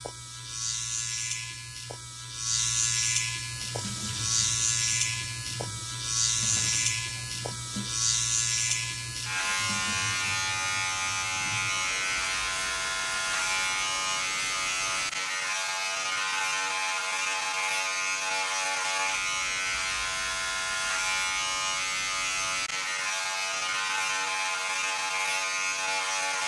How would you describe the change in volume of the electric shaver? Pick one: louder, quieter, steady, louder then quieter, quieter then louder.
steady.